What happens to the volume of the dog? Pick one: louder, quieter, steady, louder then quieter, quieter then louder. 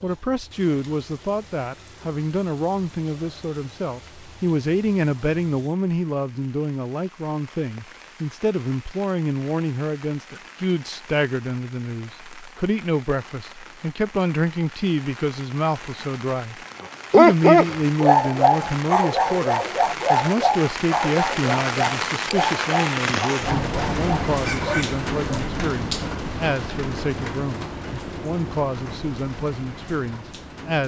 quieter.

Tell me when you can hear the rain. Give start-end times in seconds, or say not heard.
0.0-30.8.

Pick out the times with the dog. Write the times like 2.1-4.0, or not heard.
17.1-25.5.